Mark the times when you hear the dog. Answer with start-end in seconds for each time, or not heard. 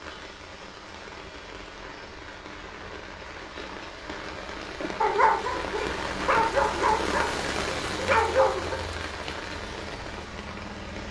4.8-8.8.